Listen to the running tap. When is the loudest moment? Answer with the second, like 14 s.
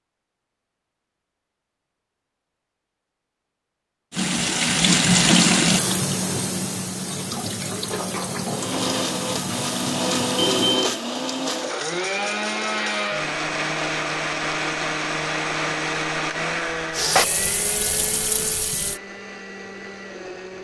5 s.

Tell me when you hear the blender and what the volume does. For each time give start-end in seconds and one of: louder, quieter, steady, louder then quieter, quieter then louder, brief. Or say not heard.
8.4-20.5 quieter.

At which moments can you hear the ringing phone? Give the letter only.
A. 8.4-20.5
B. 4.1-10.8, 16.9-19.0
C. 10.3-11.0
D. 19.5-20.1
C.